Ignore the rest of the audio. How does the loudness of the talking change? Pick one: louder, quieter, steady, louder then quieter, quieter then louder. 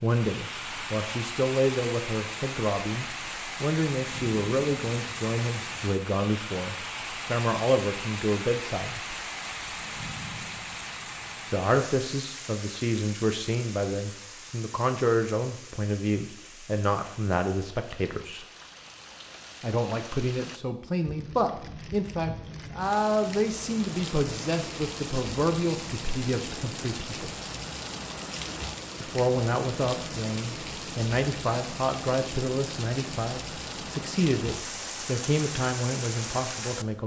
steady.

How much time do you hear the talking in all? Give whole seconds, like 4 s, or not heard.
32 s.